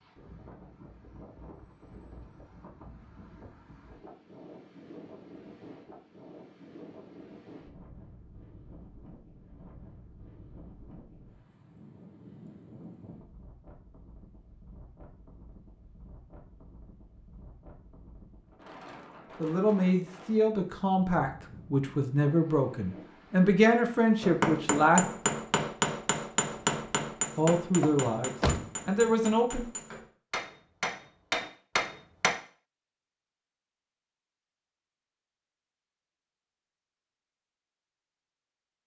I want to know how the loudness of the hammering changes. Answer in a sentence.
The volume of the hammering goes down, then up.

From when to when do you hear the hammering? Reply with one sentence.
You can hear the hammering from 24.2 to 32.4 s.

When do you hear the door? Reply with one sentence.
The door can be heard from 27.8 to 29.1 s.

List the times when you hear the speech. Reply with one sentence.
The speech can be heard from 19.4 to 25.1 s and from 27.4 to 29.6 s.